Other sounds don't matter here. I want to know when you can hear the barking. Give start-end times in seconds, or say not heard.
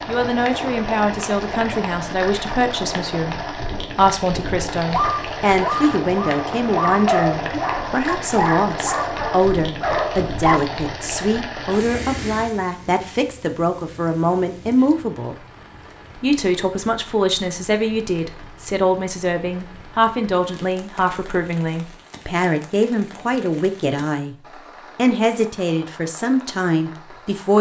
4.9-10.6.